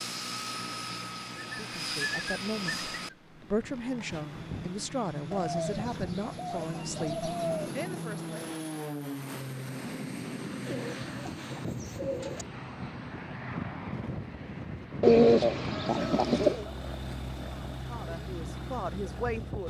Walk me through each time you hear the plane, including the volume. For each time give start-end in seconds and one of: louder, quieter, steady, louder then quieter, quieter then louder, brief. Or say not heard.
0.0-19.6 steady.